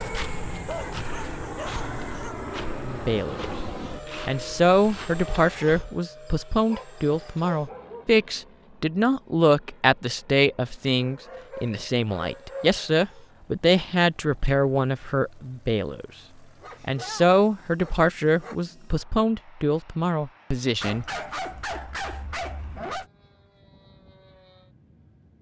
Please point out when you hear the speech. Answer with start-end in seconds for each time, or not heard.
2.8-3.5, 4.2-16.1, 16.8-21.1.